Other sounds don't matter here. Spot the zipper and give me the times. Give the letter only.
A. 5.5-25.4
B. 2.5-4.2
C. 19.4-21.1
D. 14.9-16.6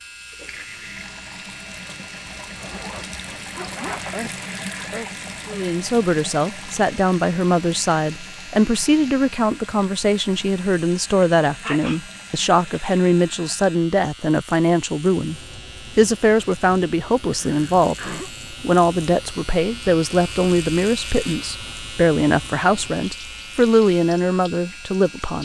B.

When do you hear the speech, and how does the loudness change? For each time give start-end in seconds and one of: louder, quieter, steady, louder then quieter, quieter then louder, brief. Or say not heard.
5.5-25.4 steady.